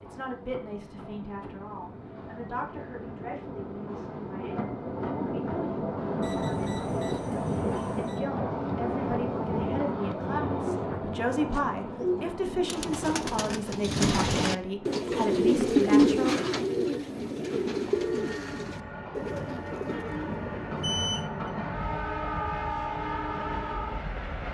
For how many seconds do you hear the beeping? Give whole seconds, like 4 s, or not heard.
3 s.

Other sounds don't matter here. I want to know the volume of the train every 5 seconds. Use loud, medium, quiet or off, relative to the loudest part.
medium, loud, medium, medium, loud.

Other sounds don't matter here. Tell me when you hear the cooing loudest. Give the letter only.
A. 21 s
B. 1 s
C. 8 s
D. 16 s
D.